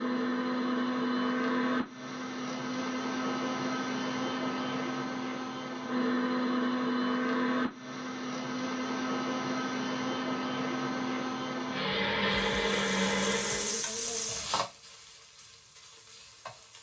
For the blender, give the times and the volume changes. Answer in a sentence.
You can hear the blender from 0.0 to 13.8 s, at a steady volume.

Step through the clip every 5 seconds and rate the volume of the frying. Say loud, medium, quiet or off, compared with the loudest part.
off, off, loud, quiet.